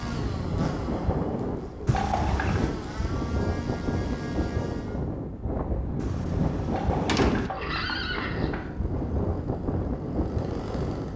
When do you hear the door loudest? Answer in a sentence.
The loudest moment of the door is at 7 seconds.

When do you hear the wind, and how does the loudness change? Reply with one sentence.
The wind can be heard from 0.0 to 11.1 s, at a steady volume.